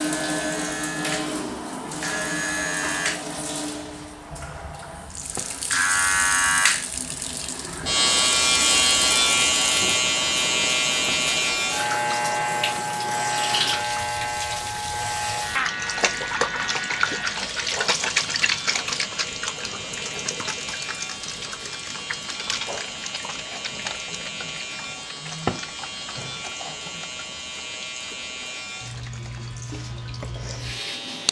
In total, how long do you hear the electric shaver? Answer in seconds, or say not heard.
31 s.